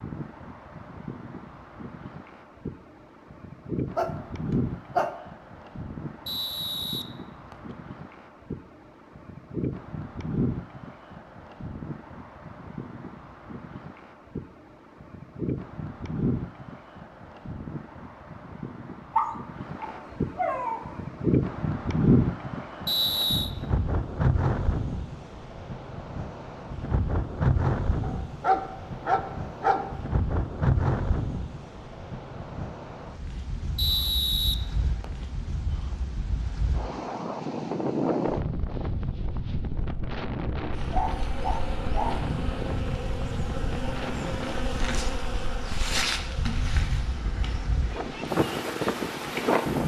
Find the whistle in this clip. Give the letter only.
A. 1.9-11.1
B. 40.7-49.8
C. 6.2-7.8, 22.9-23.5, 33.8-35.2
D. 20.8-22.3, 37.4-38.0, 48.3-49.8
C.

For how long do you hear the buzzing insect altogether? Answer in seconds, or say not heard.
9 s.